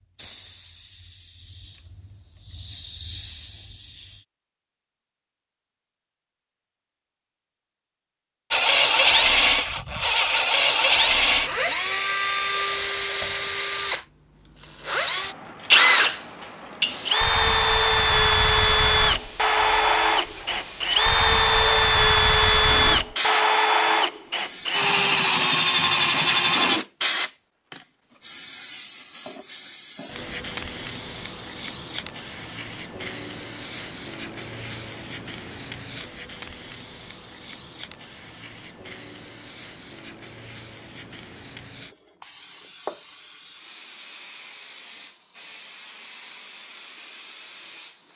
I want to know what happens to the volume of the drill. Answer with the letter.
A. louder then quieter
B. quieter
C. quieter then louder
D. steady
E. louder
D.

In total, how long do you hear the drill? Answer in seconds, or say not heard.
18 s.